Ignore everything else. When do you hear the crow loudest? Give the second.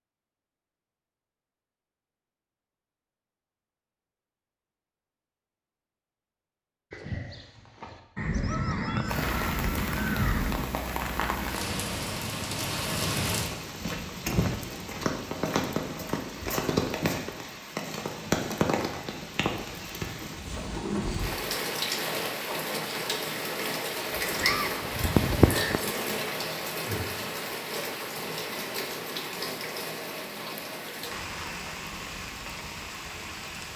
25 s.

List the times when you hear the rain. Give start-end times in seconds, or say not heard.
9.1-33.7.